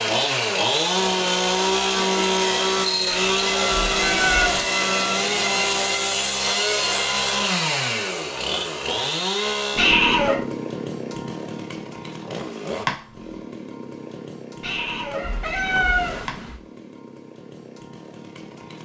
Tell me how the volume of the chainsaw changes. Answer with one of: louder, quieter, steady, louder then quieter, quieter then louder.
quieter.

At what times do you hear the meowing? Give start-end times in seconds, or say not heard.
3.1-4.7, 9.8-10.4, 14.6-16.6.